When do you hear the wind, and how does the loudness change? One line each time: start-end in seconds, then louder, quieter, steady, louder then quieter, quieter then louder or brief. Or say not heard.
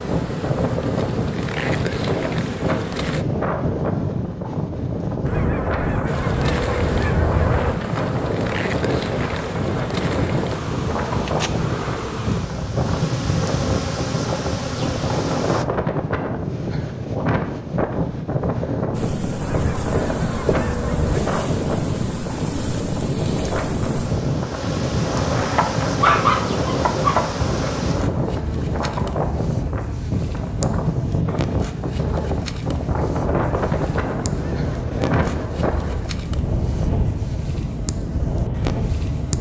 0.0-39.3 steady.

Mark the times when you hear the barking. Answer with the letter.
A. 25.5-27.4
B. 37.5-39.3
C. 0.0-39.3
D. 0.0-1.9
A.